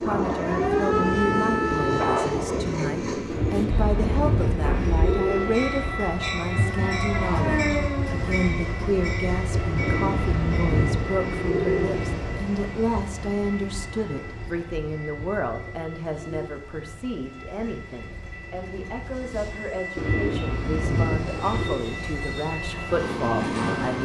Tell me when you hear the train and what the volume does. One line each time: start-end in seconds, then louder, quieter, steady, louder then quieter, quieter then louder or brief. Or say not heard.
0.0-23.9 quieter then louder.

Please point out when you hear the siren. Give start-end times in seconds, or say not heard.
0.2-2.5, 6.5-8.5.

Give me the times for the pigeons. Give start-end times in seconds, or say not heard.
3.2-6.0, 9.8-12.4, 19.9-21.9.